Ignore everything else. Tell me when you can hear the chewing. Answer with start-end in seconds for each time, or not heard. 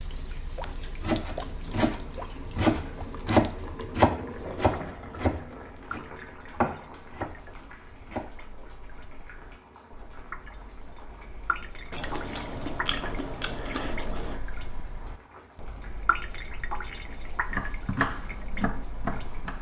11.9-14.4.